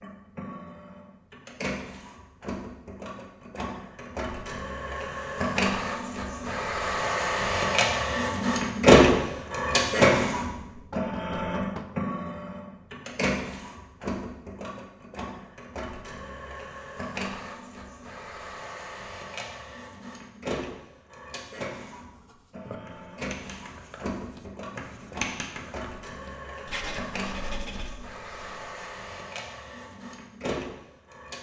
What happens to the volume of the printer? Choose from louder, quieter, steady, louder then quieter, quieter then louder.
louder then quieter.